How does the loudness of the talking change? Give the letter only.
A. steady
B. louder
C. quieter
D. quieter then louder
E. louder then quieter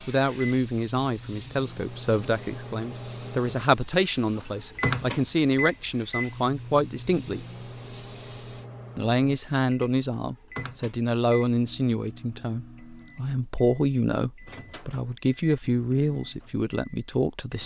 A.